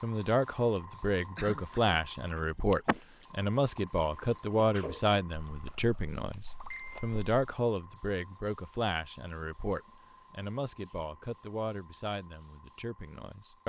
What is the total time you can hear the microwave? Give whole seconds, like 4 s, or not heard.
not heard.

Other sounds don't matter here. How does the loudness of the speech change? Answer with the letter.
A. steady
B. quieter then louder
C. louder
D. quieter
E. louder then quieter
D.